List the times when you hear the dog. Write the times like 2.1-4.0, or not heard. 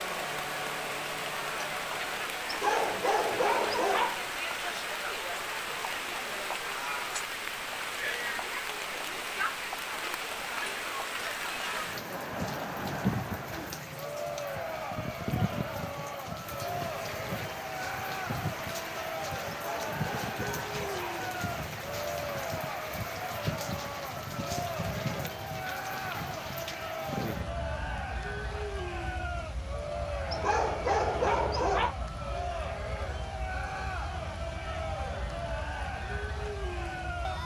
2.5-4.2, 19.5-21.3, 30.3-31.9.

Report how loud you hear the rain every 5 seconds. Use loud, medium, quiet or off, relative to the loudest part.
loud, loud, loud, loud, loud, loud, medium, medium.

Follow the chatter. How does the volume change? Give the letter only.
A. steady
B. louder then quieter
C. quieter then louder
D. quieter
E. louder
A.